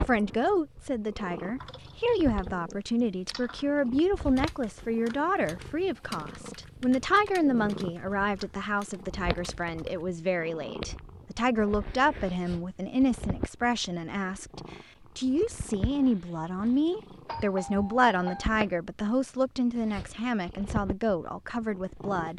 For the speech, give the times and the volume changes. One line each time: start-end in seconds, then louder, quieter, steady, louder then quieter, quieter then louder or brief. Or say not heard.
0.1-22.3 steady.